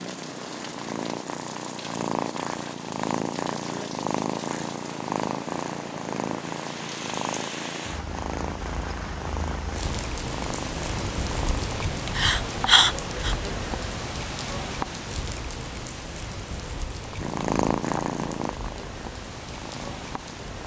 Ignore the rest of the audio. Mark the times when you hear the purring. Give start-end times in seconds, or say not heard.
0.0-11.7, 17.2-20.4.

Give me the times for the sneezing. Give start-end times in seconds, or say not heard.
12.2-13.3.